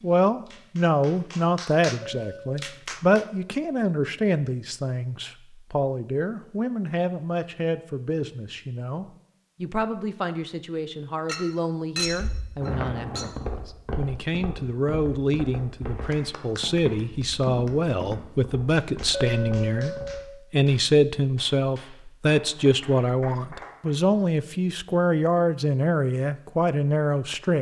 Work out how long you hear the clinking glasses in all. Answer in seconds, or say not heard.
4 s.